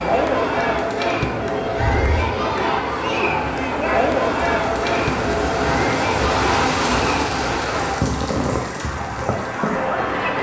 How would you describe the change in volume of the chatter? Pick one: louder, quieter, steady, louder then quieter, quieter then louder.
quieter.